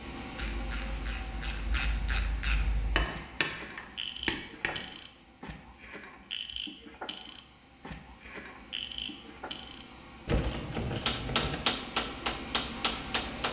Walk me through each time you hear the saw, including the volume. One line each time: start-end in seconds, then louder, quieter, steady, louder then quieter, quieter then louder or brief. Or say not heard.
not heard.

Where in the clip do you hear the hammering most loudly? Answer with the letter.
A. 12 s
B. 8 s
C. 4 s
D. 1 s
A.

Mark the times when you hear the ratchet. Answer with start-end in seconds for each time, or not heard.
0.3-11.6.